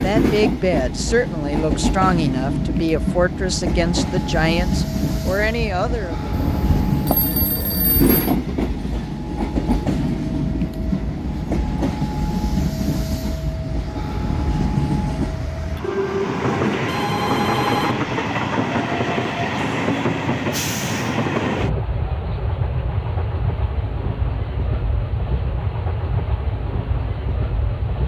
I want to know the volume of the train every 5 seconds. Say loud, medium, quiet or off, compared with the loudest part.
loud, loud, loud, loud, loud, medium.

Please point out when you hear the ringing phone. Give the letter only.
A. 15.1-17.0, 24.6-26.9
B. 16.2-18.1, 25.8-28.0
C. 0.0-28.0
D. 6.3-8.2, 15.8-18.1
D.